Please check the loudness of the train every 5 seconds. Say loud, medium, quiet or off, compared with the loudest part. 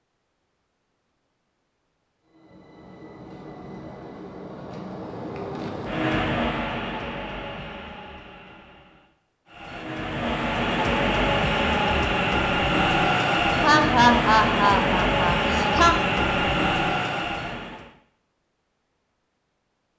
quiet, medium, loud, loud.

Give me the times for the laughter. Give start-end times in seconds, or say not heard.
13.6-15.9.